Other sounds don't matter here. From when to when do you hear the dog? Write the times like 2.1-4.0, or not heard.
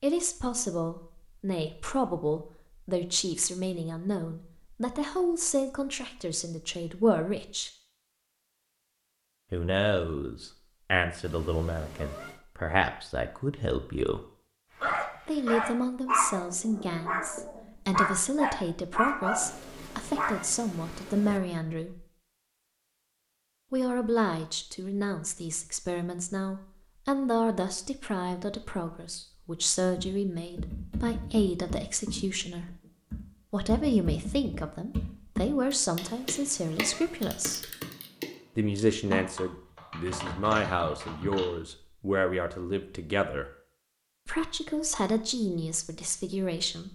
14.8-20.4.